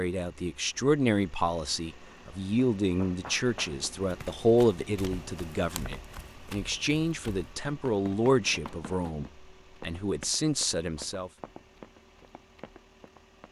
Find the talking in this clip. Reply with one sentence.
The talking can be heard from 0.0 to 11.3 s.